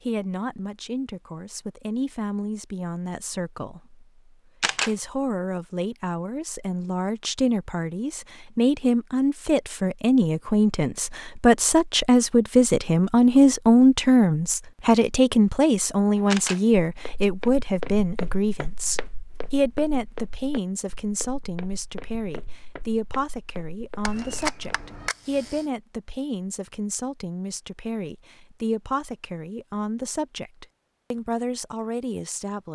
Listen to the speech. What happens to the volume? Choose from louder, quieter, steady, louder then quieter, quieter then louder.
louder then quieter.